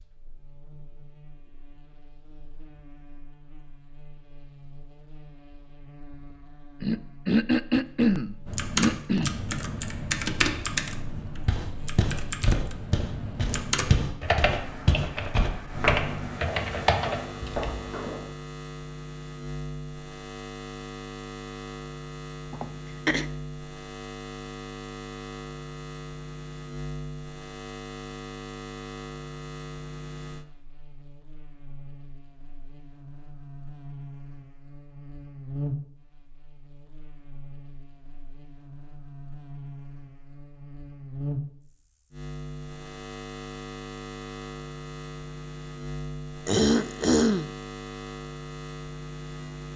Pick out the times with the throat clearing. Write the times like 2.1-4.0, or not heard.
6.8-9.3, 22.5-23.2, 46.5-47.5.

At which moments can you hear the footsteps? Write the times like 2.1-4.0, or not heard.
11.4-18.3.